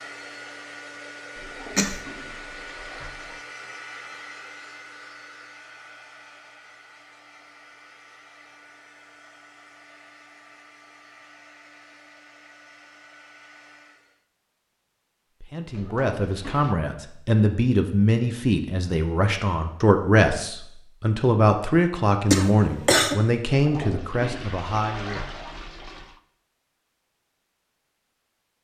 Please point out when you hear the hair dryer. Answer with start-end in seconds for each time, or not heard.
0.0-14.2.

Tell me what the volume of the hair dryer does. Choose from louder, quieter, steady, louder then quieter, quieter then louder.
quieter.